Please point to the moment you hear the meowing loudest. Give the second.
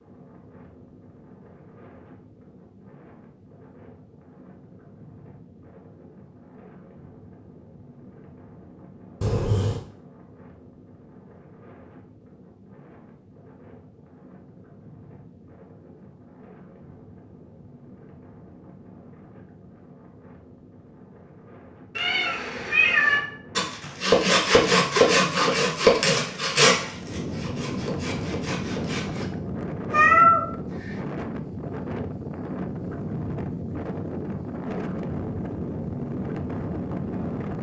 30 s.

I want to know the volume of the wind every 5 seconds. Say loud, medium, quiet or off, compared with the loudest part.
quiet, quiet, quiet, quiet, quiet, loud, loud, loud.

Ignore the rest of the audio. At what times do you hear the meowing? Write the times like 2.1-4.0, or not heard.
9.2-9.8, 21.9-23.2, 29.9-30.4.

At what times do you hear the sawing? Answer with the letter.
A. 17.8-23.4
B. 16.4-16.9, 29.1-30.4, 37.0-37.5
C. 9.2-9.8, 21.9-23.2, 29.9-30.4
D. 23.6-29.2
D.